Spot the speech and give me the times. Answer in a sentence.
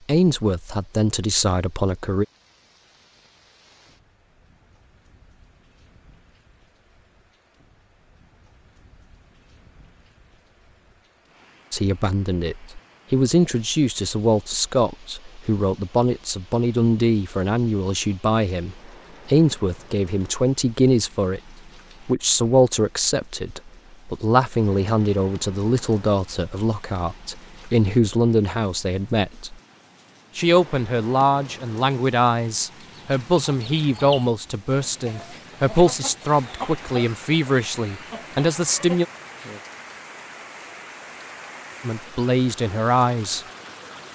You can hear the speech from 0.1 to 2.2 s, from 11.7 to 29.6 s, from 30.4 to 39.0 s and from 41.8 to 43.5 s.